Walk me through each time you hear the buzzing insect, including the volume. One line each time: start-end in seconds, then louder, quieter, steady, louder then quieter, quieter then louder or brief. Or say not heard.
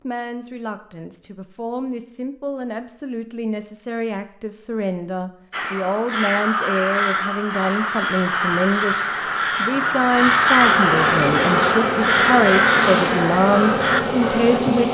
10.6-14.9 steady.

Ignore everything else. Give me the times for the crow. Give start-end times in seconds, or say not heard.
5.5-14.6.